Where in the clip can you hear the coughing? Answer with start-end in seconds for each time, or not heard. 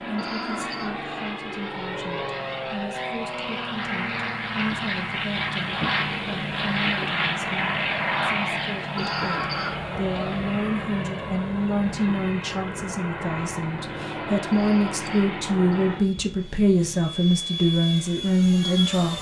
0.1-0.9, 8.9-9.8, 14.5-15.9.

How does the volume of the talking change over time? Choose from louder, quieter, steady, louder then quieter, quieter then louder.
louder.